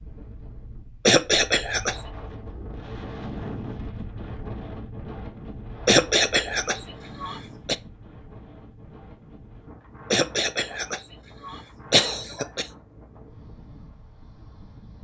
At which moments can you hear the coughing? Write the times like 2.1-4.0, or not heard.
1.1-2.0, 5.8-7.8, 10.1-12.7.